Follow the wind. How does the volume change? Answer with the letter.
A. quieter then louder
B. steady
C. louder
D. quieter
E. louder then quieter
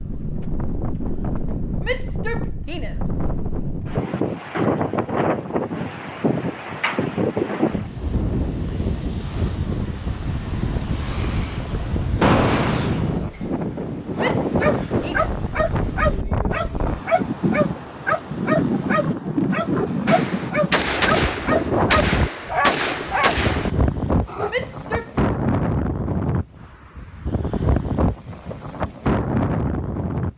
B.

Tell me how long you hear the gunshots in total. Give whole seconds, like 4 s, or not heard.
5 s.